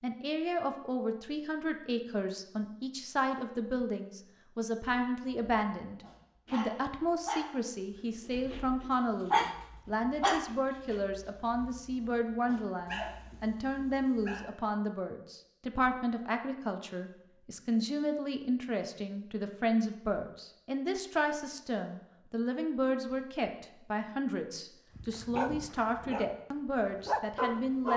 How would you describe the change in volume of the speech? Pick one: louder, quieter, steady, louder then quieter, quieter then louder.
steady.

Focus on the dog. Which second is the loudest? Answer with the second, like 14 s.
9 s.